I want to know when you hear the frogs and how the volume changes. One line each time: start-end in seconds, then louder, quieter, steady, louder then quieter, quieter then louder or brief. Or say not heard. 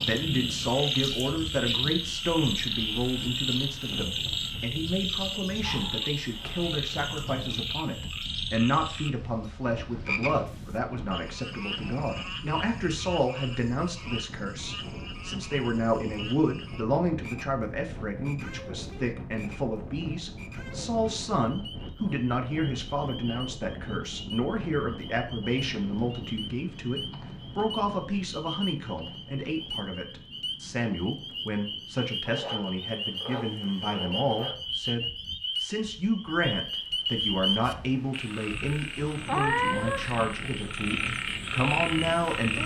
0.0-42.6 quieter then louder.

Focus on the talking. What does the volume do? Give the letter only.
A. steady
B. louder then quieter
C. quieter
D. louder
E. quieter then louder
A.